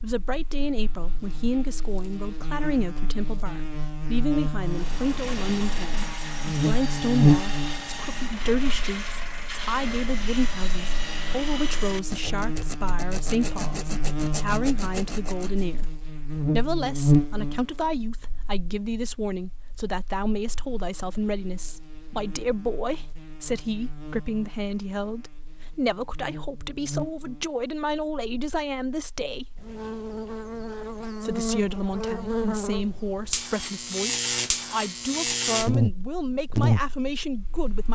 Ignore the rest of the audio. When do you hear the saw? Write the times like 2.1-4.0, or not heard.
4.6-15.7.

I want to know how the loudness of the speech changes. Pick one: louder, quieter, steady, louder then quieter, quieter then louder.
steady.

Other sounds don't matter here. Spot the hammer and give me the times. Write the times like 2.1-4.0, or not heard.
not heard.